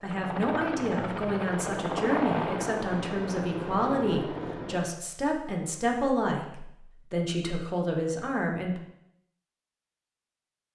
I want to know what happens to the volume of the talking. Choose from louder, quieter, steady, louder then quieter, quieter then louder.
steady.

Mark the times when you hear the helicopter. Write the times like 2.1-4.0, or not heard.
0.0-4.8.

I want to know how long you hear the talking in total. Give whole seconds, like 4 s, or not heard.
9 s.